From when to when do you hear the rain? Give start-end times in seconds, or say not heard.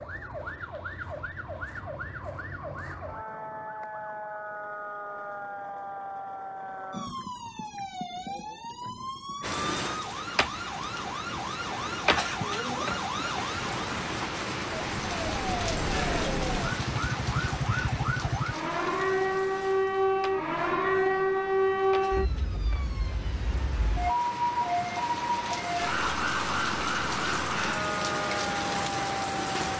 9.4-29.7.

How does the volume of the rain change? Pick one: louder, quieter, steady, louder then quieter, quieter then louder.
quieter then louder.